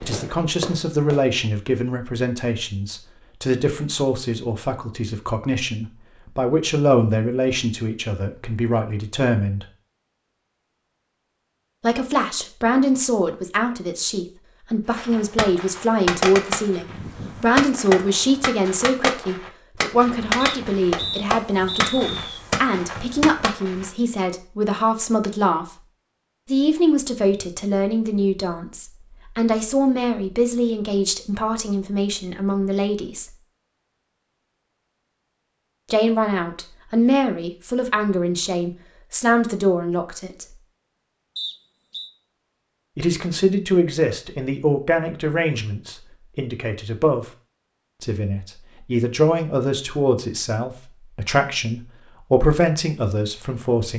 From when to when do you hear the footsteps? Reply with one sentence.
You can't hear the footsteps here.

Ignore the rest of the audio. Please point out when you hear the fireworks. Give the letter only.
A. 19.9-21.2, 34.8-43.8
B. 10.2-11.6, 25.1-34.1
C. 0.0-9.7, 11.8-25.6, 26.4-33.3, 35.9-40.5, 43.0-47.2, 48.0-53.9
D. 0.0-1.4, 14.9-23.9
D.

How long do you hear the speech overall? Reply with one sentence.
The speech can be heard for 45 seconds in total.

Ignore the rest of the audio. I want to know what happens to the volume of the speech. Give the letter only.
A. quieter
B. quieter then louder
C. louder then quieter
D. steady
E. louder
D.